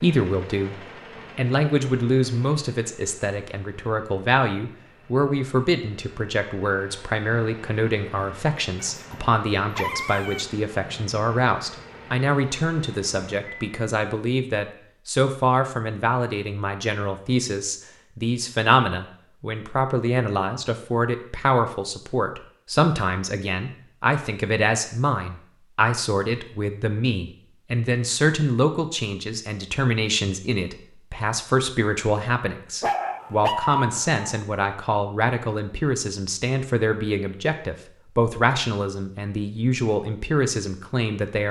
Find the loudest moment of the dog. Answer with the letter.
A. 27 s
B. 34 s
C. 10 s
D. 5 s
B.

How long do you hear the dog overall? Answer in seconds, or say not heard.
3 s.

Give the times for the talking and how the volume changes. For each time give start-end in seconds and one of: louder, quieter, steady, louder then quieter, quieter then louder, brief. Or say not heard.
0.0-0.8 brief
1.4-41.4 steady.